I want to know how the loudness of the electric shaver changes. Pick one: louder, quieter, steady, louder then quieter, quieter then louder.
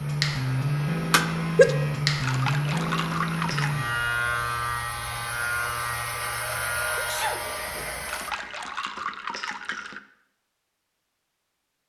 quieter.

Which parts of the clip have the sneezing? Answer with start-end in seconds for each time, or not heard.
1.1-1.6, 6.5-7.4.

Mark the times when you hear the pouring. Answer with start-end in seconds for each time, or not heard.
2.2-3.8, 8.1-10.0.